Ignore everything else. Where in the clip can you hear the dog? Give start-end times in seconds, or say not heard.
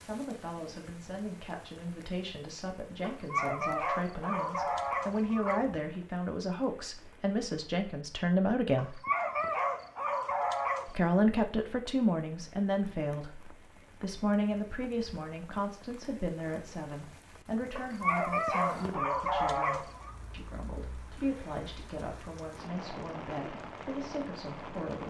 3.0-5.7, 8.8-11.1, 17.8-20.1.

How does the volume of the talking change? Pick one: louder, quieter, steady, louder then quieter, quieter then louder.
louder then quieter.